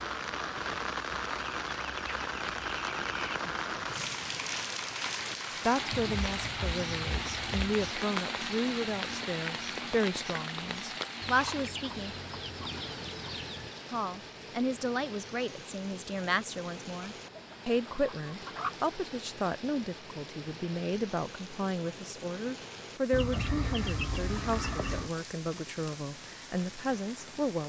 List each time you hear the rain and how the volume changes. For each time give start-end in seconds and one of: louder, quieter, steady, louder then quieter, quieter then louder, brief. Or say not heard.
0.0-27.6 quieter.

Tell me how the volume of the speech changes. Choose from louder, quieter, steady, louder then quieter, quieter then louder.
steady.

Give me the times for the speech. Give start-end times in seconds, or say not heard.
5.6-12.2, 13.9-27.6.